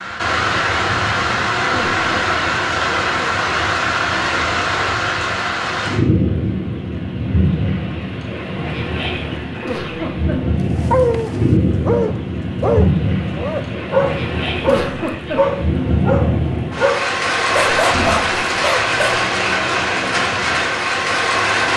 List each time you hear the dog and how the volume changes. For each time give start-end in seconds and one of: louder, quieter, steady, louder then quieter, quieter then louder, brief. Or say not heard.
10.8-19.2 steady.